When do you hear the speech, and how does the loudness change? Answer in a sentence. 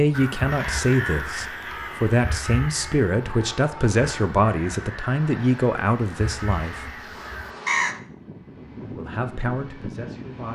You can hear the speech from 0.0 to 6.8 s, at a steady volume; and briefly from 8.9 to 10.5 s.